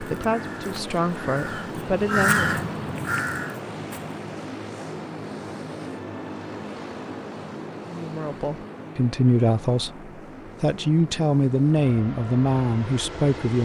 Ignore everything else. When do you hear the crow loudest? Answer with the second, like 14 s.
2 s.